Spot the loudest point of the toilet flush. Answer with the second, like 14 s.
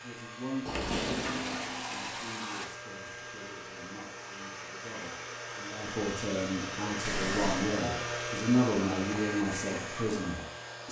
1 s.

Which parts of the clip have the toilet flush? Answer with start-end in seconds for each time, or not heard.
0.7-2.6, 7.0-7.7.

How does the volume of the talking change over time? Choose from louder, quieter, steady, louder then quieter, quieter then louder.
quieter then louder.